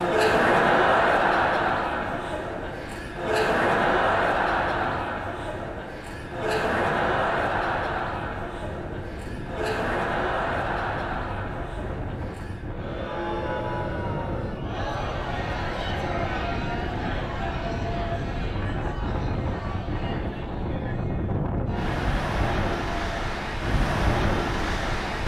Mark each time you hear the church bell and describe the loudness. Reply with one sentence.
You can't hear the church bell here.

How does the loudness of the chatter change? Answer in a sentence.
The volume of the chatter goes down.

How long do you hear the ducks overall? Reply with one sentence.
The ducks can't be heard in this clip.